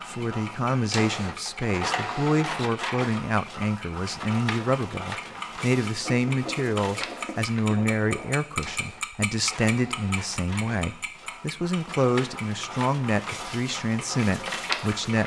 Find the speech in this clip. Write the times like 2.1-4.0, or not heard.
0.1-15.2.